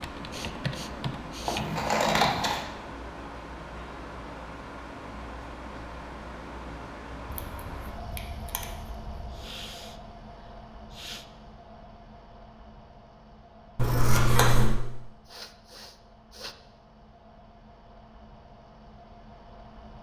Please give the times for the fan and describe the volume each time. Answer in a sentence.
The fan can be heard from 0.0 to 19.9 s, getting quieter.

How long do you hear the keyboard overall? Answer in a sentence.
You can hear the keyboard for 2 seconds altogether.